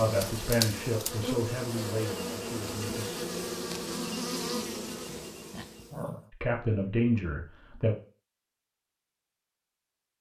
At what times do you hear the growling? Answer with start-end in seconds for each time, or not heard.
5.0-6.3.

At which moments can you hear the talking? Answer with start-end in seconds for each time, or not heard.
0.0-3.0, 6.4-8.0.